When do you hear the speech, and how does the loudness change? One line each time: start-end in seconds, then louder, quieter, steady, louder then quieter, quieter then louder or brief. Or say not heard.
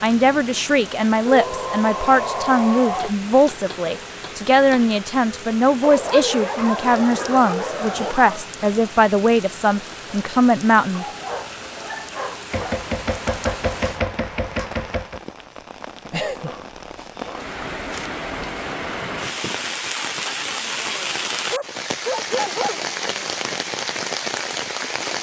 0.0-11.1 steady.